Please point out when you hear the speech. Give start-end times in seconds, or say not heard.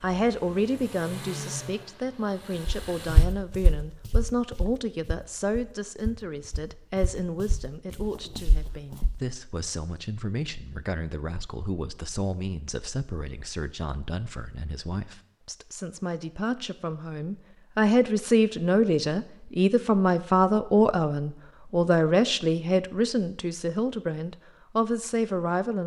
0.0-25.8.